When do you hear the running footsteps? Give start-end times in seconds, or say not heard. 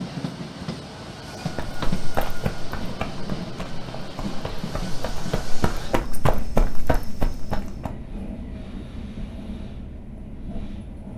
1.4-7.9.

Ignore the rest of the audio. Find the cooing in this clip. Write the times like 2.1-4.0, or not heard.
not heard.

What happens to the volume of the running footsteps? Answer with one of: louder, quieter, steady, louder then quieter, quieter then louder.
quieter then louder.